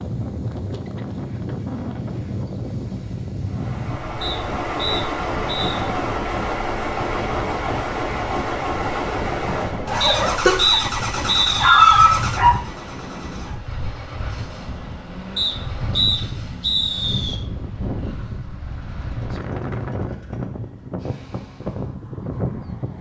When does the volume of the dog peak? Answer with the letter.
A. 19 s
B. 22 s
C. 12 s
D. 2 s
C.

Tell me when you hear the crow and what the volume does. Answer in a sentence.
The crow can't be heard in this clip.